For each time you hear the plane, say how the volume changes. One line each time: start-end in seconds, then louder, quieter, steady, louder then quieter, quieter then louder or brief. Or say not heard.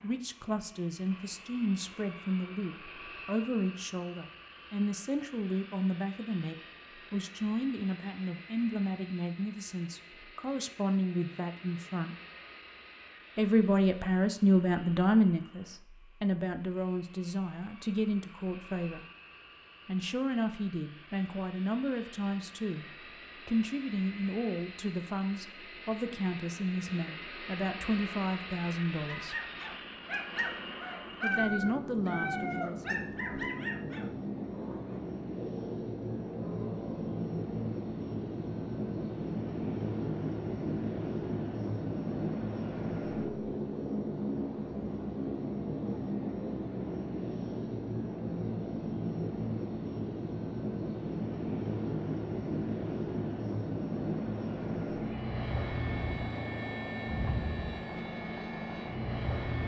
0.0-59.6 louder.